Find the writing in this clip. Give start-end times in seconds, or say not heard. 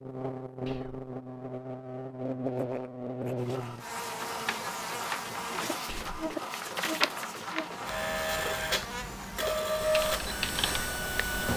not heard.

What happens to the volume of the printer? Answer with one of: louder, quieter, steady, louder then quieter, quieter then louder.
louder.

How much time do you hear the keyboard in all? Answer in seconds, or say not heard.
2 s.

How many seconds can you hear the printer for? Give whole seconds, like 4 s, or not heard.
8 s.